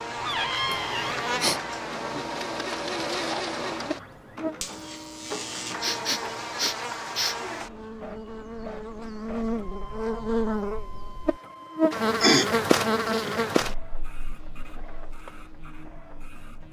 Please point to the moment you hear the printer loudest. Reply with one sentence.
The volume of the printer peaks at 3 seconds.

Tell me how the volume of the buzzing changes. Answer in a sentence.
The volume of the buzzing goes up, then down.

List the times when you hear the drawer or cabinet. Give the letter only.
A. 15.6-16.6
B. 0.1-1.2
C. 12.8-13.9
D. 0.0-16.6
B.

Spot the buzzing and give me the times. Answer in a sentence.
The buzzing can be heard from 0.0 to 16.6 s.